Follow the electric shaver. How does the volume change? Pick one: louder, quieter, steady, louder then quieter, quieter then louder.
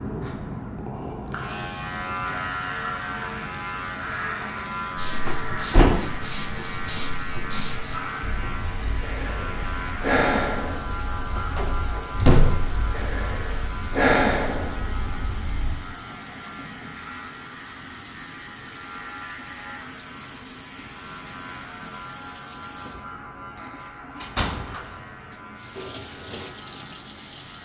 quieter.